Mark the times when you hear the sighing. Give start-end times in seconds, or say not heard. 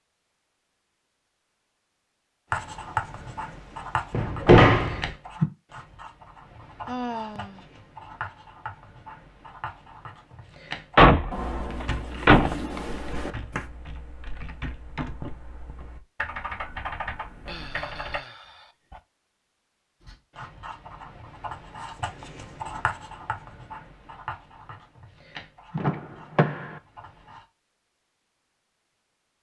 6.8-7.7, 17.4-19.0.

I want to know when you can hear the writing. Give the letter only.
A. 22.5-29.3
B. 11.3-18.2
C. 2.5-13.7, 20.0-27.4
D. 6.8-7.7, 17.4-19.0
C.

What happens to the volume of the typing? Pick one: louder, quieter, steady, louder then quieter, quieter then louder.
quieter then louder.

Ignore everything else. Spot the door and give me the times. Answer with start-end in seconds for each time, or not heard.
4.1-5.0, 10.9-12.6, 25.8-26.6.